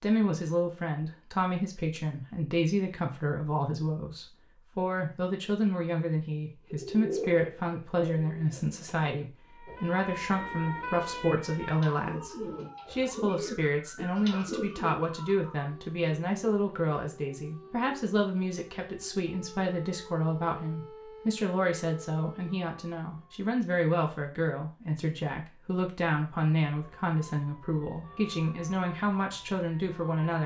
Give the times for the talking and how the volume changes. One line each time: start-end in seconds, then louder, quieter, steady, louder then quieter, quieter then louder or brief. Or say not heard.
0.0-30.4 steady.